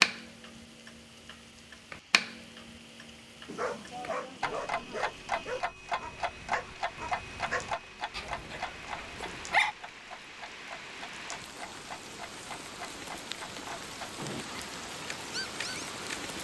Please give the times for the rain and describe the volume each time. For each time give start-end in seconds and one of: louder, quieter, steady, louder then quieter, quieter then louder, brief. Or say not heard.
0.1-16.3 louder.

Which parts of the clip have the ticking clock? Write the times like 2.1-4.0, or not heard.
0.0-16.2.